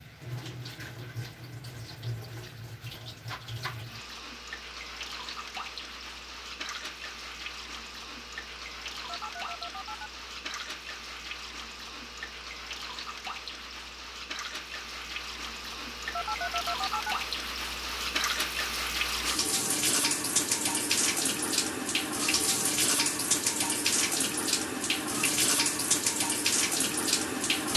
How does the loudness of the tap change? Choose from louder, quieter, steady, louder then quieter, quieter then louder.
louder.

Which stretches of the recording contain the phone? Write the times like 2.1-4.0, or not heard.
9.1-10.1, 16.1-17.1.